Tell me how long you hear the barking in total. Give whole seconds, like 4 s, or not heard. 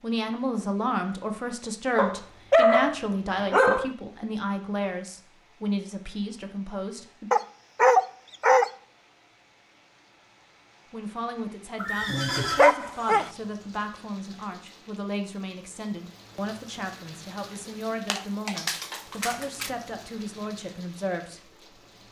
6 s.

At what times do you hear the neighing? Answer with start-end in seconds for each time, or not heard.
11.8-12.8.